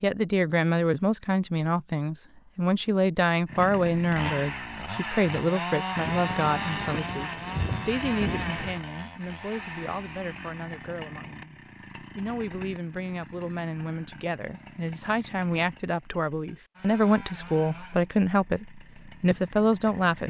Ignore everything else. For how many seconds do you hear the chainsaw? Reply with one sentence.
The chainsaw can be heard for 17 seconds in total.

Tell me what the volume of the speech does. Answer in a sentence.
The volume of the speech goes down, then up.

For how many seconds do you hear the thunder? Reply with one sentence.
The thunder can be heard for 3 seconds in total.